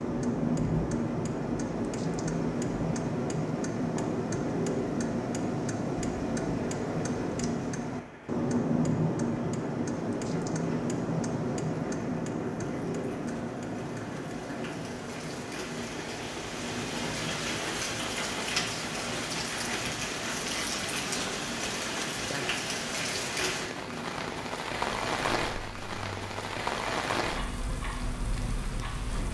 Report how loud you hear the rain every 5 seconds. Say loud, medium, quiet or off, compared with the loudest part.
quiet, quiet, quiet, loud, loud, loud.